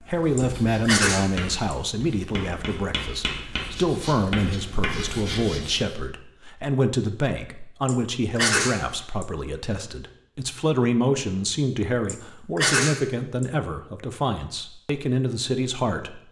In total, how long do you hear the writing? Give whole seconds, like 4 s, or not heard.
6 s.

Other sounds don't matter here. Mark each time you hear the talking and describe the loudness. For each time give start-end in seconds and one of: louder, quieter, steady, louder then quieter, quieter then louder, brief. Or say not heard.
0.0-16.2 steady.